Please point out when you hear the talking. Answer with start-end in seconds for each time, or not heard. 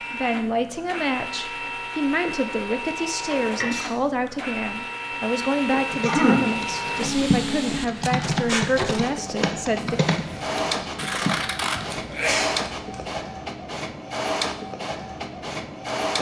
0.1-10.0.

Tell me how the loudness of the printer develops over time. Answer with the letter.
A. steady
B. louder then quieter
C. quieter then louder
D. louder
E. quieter
A.